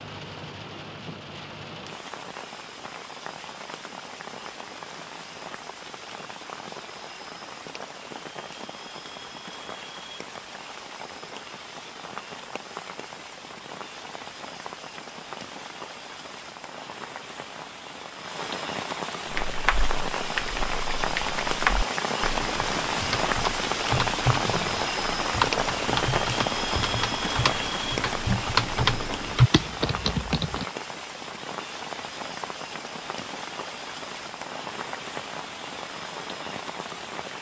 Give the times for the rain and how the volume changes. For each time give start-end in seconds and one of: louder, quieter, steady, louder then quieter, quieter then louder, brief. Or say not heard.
0.0-37.3 louder then quieter.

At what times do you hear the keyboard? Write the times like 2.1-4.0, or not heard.
19.3-30.6.